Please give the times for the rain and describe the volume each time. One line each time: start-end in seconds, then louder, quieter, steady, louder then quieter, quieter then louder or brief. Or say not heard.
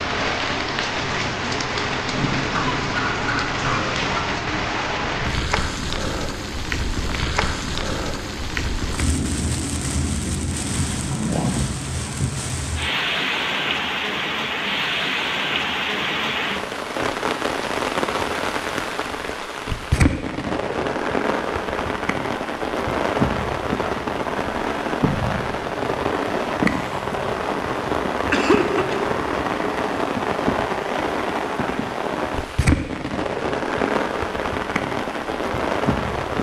0.0-36.3 steady.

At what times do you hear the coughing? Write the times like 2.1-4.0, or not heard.
2.5-4.2, 28.2-29.2.